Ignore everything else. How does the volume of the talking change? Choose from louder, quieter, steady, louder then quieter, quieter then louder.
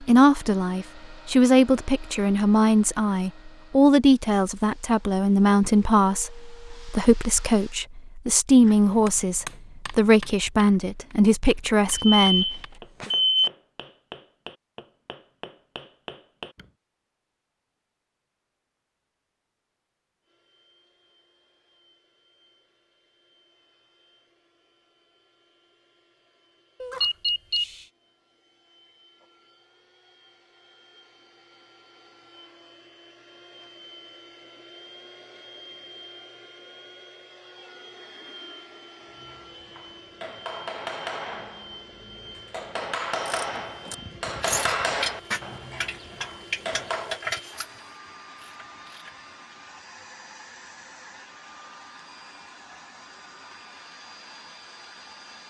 steady.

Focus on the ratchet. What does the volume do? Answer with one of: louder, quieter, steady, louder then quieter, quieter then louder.
quieter.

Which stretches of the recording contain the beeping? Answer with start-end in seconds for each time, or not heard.
11.9-13.5, 26.8-27.8, 43.9-45.7.